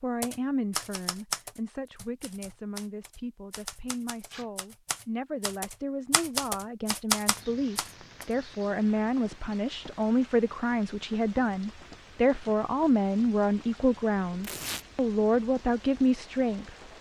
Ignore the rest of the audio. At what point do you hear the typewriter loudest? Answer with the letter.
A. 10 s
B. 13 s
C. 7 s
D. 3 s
C.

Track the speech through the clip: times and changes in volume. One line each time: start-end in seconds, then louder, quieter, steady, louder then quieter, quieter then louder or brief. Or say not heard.
0.0-16.7 louder.